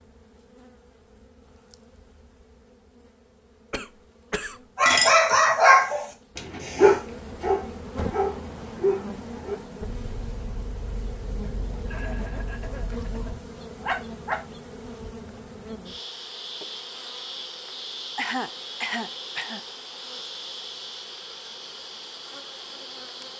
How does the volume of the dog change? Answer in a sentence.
The volume of the dog goes down, then up.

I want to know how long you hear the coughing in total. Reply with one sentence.
You can hear the coughing for 4 seconds altogether.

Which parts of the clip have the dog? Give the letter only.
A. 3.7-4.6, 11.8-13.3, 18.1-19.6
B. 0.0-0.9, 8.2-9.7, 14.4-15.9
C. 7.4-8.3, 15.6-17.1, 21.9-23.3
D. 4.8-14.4
D.